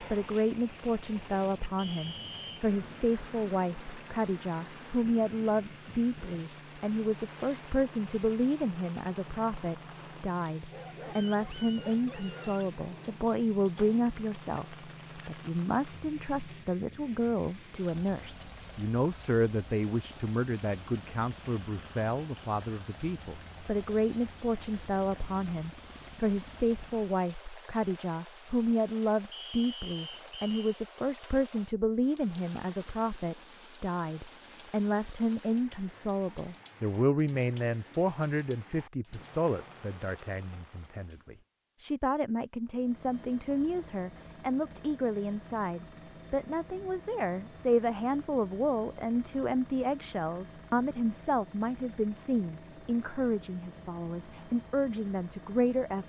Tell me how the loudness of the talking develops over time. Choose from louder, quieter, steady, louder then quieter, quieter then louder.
steady.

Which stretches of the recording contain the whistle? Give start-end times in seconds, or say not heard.
1.8-2.6, 29.3-30.6.